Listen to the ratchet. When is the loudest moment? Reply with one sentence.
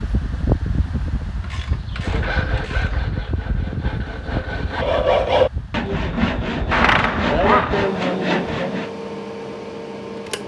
The loudest moment of the ratchet is at 7 seconds.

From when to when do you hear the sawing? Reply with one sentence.
You can hear the sawing from 1.9 to 8.9 s.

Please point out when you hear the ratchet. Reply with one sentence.
You can hear the ratchet from 1.4 to 3.1 s and from 6.1 to 7.9 s.